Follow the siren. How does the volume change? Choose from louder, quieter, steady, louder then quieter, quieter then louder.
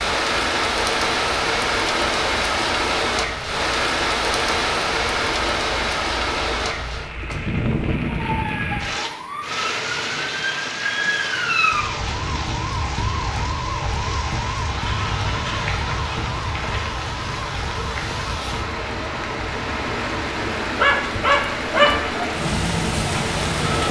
louder then quieter.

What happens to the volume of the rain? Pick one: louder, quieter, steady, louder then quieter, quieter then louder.
quieter then louder.